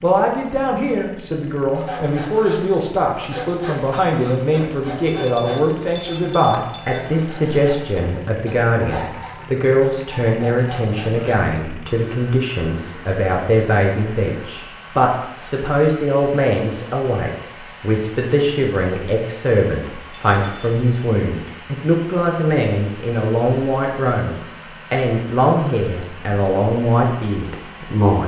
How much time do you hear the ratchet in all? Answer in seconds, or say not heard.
not heard.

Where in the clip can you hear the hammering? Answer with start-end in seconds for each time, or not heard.
not heard.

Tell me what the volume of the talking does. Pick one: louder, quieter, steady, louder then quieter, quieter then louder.
steady.